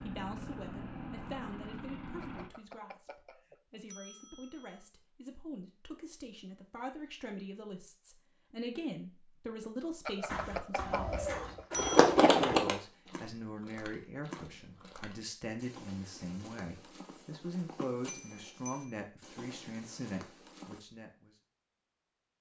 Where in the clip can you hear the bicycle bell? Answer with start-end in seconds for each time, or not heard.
2.2-4.8, 10.1-12.1, 18.1-19.0.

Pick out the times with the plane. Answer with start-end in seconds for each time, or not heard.
0.0-2.5.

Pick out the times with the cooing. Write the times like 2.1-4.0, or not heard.
10.9-12.8.